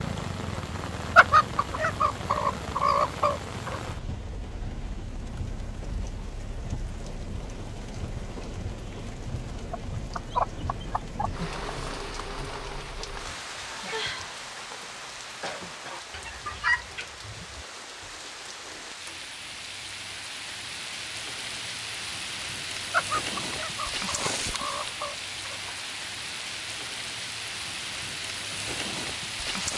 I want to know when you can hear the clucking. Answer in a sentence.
The clucking can be heard from 1.1 to 3.8 s, from 9.7 to 11.5 s, from 16.1 to 17.6 s and from 22.9 to 25.7 s.